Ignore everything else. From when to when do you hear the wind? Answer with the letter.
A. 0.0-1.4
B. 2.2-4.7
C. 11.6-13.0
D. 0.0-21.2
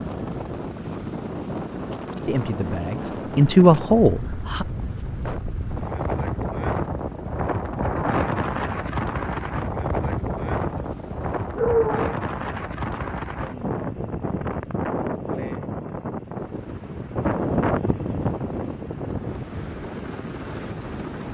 D.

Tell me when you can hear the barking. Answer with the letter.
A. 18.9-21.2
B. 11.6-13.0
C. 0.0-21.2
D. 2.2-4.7
B.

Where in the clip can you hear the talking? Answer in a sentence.
You can hear the talking from 2.2 to 4.7 s.